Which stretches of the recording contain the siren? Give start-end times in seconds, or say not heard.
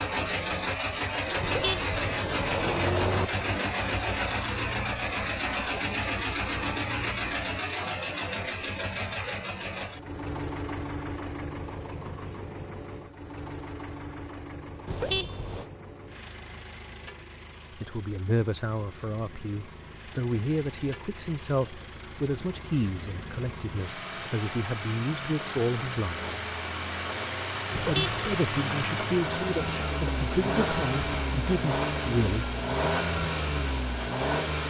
not heard.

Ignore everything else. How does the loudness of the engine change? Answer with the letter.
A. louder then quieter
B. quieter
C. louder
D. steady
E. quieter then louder
E.